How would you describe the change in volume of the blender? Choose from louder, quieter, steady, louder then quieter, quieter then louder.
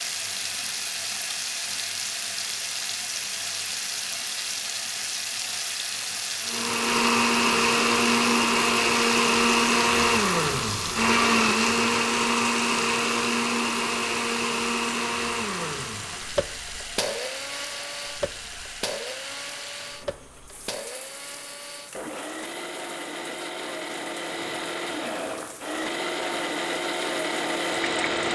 quieter then louder.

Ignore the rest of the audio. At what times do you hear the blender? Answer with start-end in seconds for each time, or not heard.
6.5-28.3.